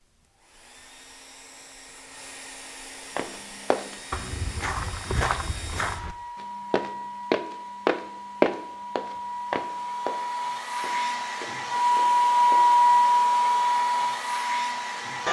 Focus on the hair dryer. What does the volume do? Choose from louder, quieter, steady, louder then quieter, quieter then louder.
louder.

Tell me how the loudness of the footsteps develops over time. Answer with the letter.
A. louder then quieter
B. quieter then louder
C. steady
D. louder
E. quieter
A.